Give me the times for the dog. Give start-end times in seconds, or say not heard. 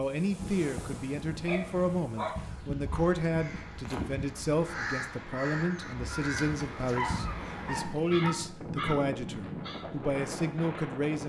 0.3-2.9, 6.3-8.3.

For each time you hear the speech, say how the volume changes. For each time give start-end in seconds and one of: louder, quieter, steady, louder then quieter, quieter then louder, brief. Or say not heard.
0.0-11.2 steady.